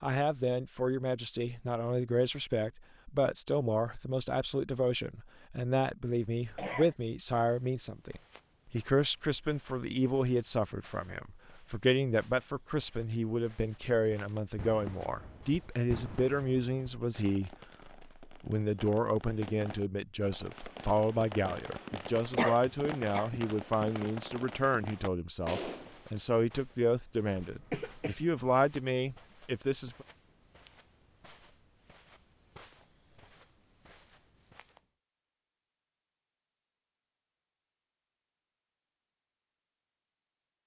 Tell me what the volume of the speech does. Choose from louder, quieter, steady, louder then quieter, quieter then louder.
steady.